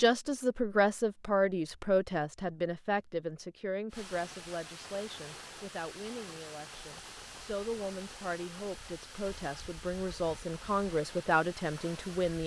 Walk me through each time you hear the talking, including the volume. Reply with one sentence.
The talking can be heard from 0.0 to 12.4 s, getting quieter then louder.